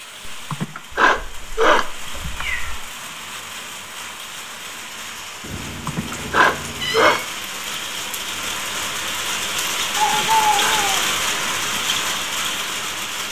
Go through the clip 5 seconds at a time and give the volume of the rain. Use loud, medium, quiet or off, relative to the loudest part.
quiet, medium, loud.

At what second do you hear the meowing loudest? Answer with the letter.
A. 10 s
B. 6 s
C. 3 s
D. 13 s
A.